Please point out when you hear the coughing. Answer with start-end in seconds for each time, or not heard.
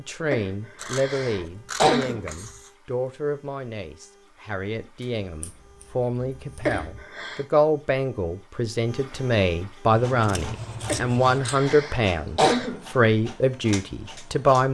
0.3-2.2, 6.7-7.4, 10.8-12.8.